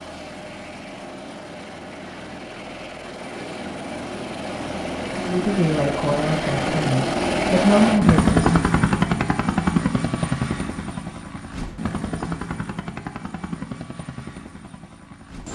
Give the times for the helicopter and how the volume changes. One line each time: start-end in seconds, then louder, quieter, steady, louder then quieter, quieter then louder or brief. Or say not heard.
0.0-15.4 louder then quieter.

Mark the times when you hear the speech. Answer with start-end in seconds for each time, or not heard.
5.2-8.3.